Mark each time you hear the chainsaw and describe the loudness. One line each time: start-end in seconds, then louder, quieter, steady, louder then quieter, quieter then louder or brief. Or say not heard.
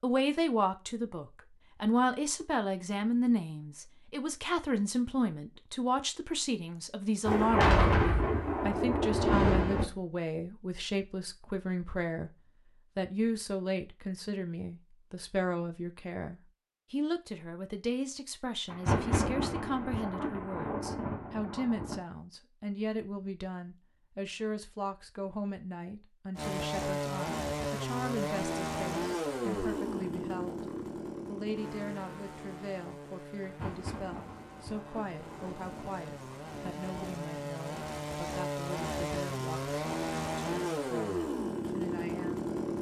26.4-42.7 quieter then louder.